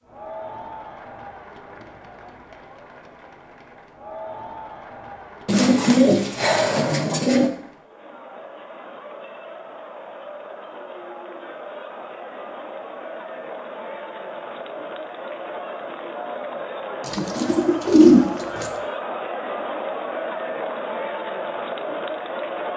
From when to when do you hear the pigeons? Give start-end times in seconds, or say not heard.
5.5-7.5, 17.1-18.7.